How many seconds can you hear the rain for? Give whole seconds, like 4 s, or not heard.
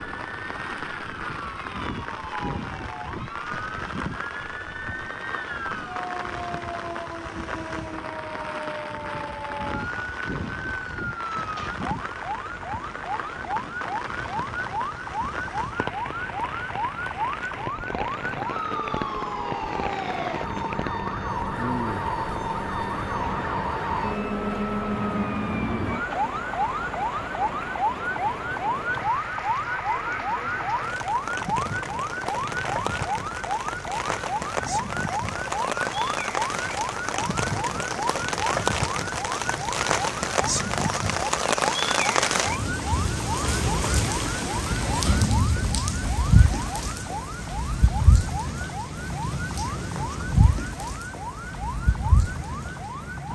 53 s.